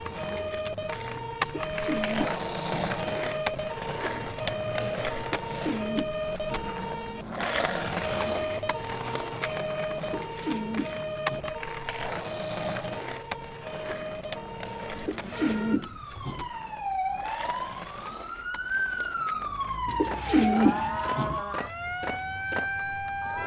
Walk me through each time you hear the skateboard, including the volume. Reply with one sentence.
You can hear the skateboard from 0.0 to 23.4 s, getting quieter.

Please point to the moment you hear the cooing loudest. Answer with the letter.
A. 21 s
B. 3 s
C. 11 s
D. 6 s
A.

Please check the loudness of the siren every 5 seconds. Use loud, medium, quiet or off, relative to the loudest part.
loud, loud, medium, loud, loud.